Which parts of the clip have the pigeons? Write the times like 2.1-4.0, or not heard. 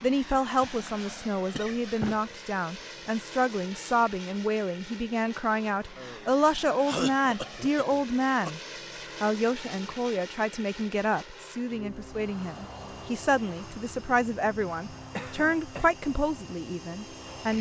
not heard.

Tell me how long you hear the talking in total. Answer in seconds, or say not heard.
17 s.